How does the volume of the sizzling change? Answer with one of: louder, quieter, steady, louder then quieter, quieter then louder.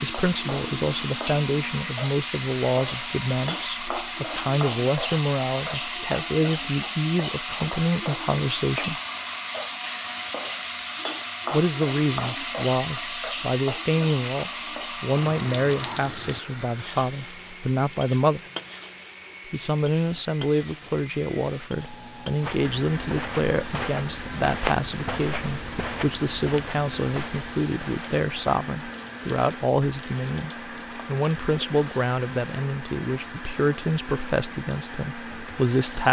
quieter.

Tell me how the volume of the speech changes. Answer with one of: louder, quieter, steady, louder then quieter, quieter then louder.
steady.